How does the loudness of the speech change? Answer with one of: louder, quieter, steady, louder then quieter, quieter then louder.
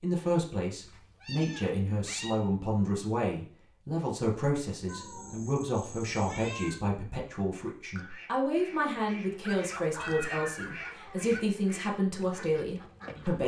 steady.